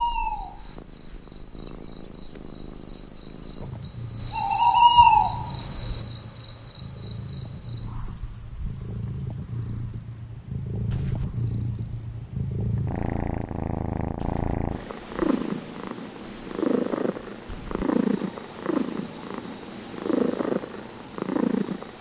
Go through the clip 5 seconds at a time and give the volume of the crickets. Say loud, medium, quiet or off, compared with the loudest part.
loud, loud, quiet, quiet, quiet.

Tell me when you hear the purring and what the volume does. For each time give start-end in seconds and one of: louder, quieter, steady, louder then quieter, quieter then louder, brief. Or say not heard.
0.0-21.9 louder.